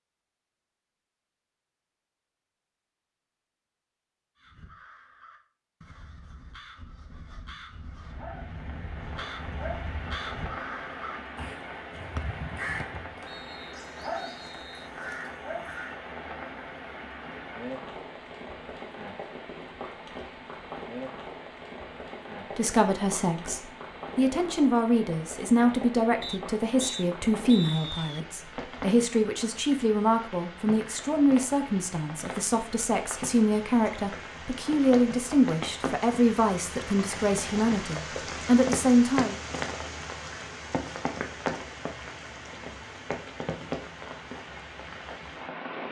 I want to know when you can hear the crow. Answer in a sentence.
The crow can be heard from 4.3 to 16.0 s.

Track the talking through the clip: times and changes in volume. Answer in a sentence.
The talking can be heard from 22.6 to 39.4 s, at a steady volume.